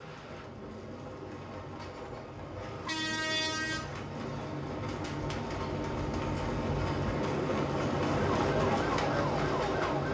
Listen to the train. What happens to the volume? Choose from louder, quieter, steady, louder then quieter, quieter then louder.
louder.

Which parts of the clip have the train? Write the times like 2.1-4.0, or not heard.
0.0-10.1.